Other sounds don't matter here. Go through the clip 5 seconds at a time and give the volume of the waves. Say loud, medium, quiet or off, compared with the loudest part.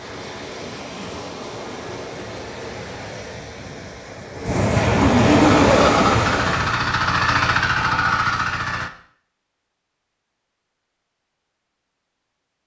medium, loud, off.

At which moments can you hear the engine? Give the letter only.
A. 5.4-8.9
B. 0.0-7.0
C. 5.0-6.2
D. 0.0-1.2
A.